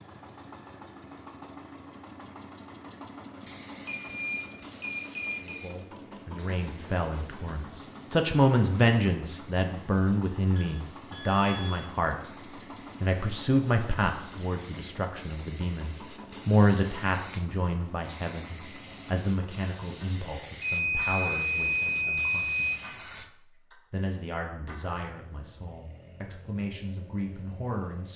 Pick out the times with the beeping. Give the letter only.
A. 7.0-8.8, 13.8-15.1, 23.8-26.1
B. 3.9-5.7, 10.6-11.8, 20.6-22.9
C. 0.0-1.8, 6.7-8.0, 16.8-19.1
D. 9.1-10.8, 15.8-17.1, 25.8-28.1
B.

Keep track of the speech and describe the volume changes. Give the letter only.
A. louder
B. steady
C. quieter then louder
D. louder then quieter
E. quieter
E.